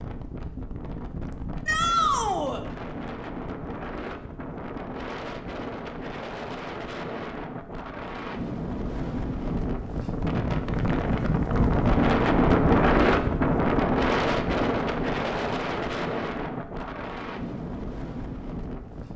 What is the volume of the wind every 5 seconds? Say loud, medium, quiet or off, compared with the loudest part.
quiet, medium, loud, medium.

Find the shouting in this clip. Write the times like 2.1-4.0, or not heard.
1.6-2.6.